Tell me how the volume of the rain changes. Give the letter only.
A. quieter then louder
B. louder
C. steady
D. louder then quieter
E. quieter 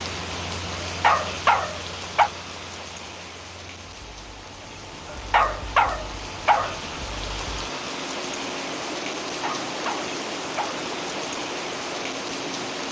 A.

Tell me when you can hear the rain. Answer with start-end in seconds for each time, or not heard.
0.0-12.8.